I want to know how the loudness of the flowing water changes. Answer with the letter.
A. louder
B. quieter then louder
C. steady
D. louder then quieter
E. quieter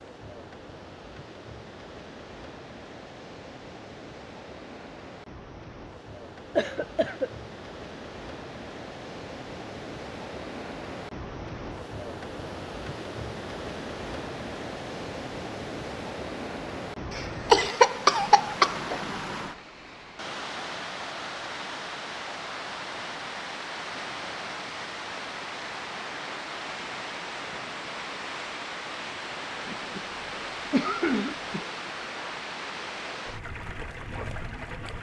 A.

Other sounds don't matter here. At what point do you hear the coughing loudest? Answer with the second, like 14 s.
18 s.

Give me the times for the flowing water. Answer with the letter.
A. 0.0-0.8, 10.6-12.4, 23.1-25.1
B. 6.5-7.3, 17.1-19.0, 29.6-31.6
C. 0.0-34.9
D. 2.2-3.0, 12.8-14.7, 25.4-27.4
C.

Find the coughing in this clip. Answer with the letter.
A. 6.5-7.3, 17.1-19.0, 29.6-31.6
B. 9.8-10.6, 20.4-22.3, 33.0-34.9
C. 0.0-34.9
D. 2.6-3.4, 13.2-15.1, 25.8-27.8
A.